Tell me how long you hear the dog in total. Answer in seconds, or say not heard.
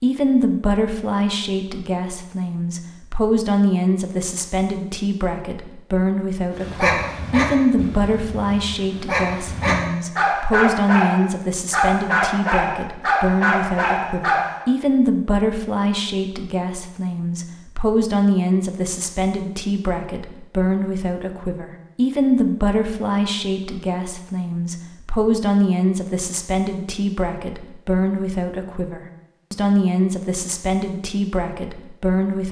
8 s.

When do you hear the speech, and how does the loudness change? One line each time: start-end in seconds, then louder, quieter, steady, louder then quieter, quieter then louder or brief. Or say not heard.
0.0-32.4 steady.